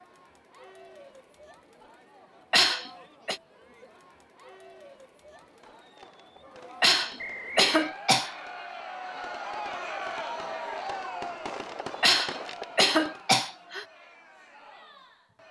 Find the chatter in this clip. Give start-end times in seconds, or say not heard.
0.0-15.4.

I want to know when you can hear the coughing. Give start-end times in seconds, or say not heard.
2.5-3.4, 6.8-8.3, 12.0-13.8.